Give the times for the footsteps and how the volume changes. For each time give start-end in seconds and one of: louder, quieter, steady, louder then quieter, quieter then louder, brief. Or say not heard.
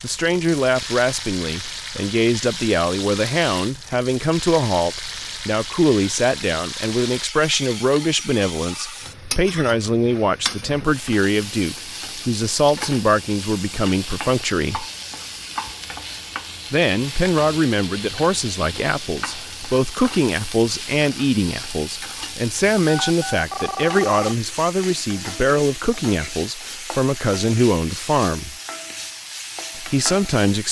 not heard.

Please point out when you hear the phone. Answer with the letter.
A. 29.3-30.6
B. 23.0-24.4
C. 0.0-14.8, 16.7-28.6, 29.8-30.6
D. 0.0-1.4
B.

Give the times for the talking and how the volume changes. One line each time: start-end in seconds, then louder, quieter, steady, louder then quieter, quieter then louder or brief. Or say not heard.
0.0-14.8 steady
16.7-28.6 steady
29.8-30.6 brief.